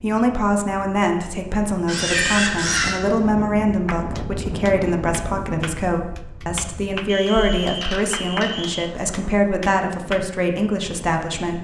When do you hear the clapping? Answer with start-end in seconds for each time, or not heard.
3.9-10.2.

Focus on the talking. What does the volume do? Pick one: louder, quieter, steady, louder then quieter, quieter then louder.
steady.